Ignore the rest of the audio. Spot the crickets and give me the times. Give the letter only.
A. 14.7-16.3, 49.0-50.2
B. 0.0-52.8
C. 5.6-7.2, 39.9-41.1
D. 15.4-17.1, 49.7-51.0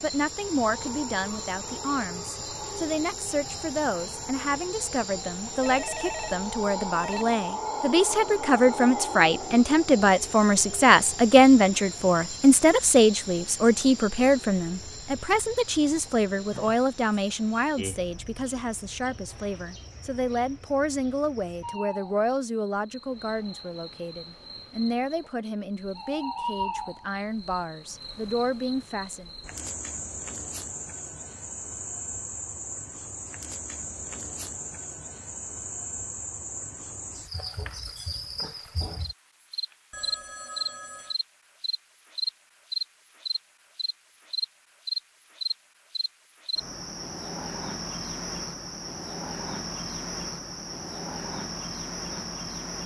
B.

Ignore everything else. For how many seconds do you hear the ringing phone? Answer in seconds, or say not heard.
3 s.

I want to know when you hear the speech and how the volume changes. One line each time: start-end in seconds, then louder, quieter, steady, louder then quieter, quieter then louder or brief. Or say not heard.
0.0-29.3 louder then quieter.